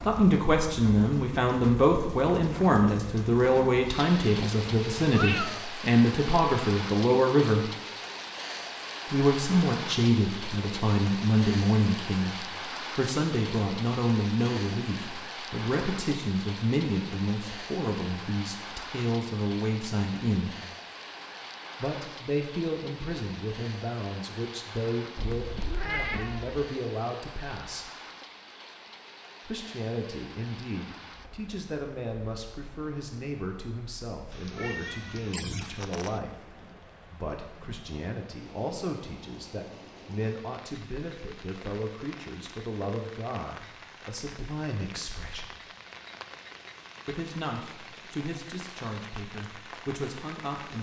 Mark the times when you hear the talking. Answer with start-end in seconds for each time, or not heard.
0.0-7.7, 9.1-20.6, 21.8-27.9, 29.4-45.6, 47.0-50.7.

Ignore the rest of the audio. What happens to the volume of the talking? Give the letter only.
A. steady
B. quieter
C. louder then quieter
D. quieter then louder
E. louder
B.